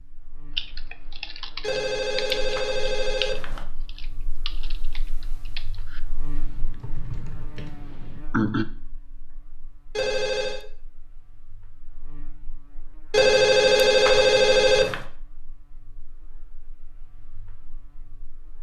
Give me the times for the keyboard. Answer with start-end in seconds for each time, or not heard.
0.6-8.7.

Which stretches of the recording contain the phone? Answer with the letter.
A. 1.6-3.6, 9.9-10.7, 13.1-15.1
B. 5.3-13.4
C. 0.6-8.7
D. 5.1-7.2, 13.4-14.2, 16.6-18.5
A.